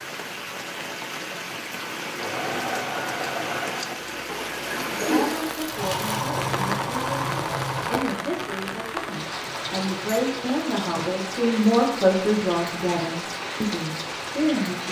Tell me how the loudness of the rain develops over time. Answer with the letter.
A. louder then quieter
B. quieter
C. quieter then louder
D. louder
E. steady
E.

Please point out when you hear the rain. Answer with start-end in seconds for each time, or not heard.
0.0-14.8.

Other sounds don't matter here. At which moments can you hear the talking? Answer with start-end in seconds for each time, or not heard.
5.0-14.8.